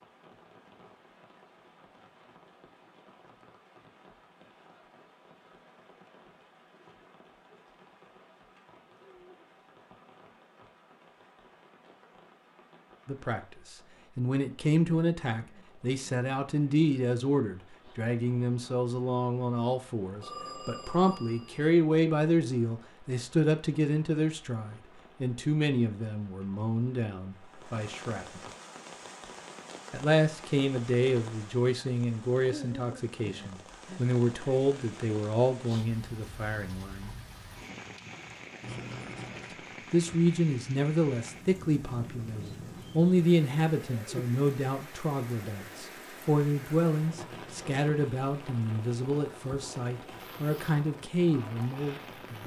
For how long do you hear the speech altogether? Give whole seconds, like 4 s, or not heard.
35 s.